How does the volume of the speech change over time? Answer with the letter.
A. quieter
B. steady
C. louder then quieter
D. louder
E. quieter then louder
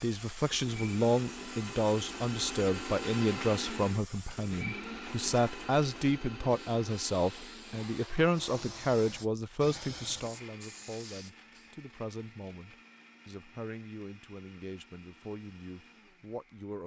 A.